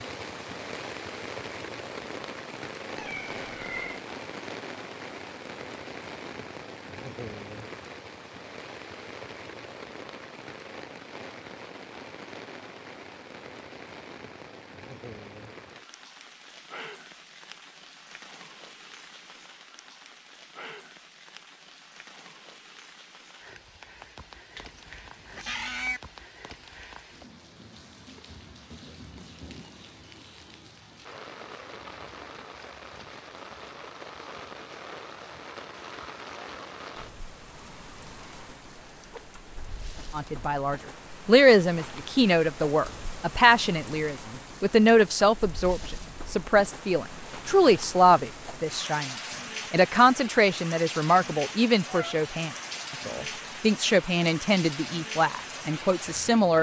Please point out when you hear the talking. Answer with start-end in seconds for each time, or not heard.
40.1-56.5.